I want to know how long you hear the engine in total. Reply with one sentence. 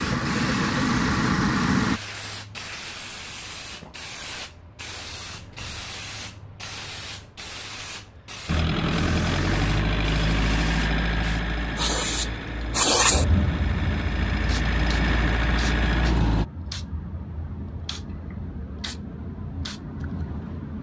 You can hear the engine for 10 seconds altogether.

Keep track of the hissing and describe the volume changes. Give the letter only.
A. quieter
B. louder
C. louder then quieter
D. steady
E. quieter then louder
C.